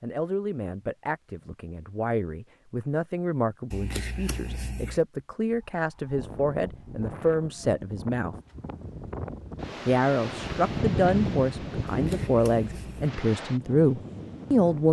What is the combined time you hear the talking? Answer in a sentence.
You can hear the talking for 13 seconds altogether.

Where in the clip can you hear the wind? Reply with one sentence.
You can hear the wind from 5.4 to 14.8 s.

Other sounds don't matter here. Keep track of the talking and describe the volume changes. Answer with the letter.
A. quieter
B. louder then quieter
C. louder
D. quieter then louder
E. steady
C.